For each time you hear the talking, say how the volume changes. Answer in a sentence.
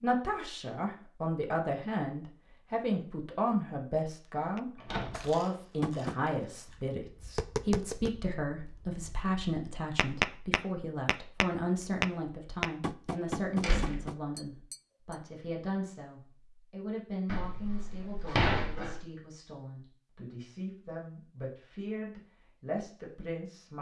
You can hear the talking from 0.0 to 23.7 s, getting quieter.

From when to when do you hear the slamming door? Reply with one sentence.
The slamming door can be heard from 4.8 to 5.3 s, from 13.6 to 14.0 s and from 17.2 to 19.0 s.